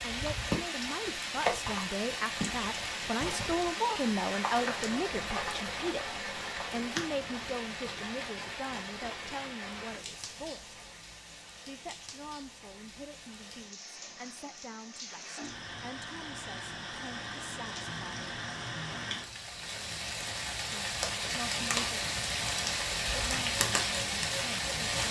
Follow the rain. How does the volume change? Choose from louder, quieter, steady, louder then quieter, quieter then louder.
quieter then louder.